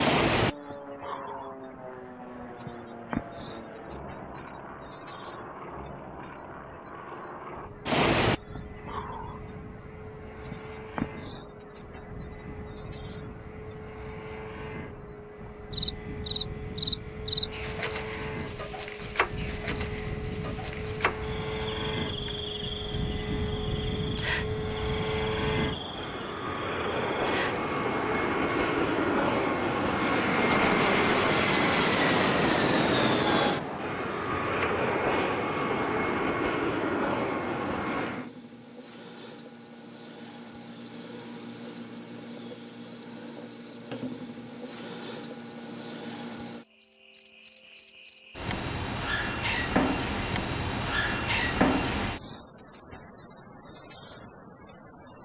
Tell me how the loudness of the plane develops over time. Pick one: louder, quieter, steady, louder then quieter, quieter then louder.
louder.